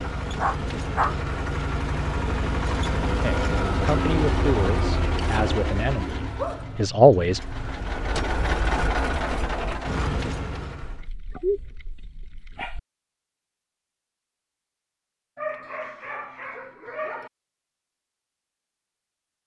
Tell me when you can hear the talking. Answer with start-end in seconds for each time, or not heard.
3.2-7.4.